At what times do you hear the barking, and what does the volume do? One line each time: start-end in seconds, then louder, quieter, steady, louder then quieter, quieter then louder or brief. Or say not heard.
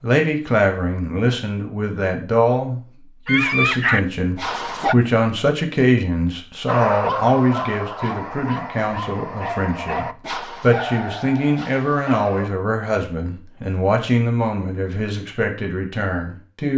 3.2-5.0 brief
6.7-12.5 quieter.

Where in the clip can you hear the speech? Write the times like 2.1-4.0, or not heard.
0.0-16.7.